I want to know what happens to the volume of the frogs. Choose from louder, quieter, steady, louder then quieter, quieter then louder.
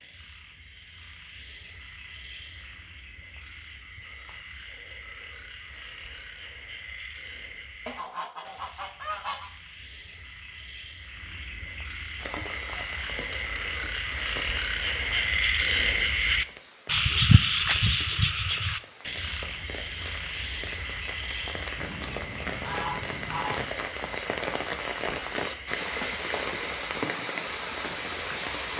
louder then quieter.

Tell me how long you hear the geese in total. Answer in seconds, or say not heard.
4 s.